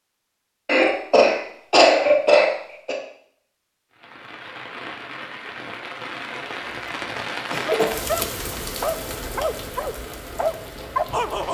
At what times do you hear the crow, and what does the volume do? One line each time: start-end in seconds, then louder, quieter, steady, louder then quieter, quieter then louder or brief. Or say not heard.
not heard.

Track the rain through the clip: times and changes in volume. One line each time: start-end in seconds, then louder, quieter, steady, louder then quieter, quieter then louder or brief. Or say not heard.
3.9-11.4 louder then quieter.